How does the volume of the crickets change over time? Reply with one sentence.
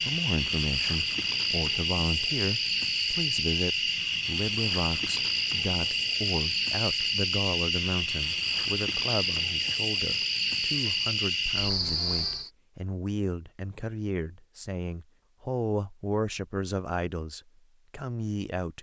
The volume of the crickets stays about the same.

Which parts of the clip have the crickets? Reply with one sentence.
You can hear the crickets from 0.0 to 12.5 s.